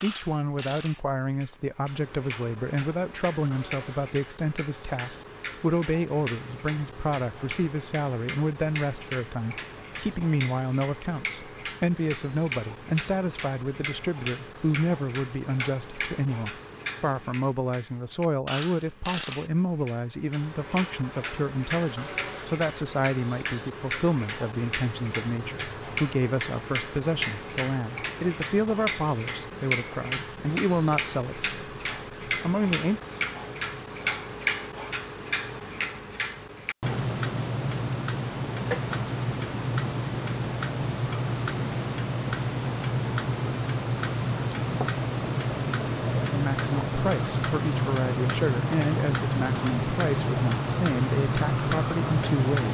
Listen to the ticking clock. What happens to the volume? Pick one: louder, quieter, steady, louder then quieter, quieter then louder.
louder.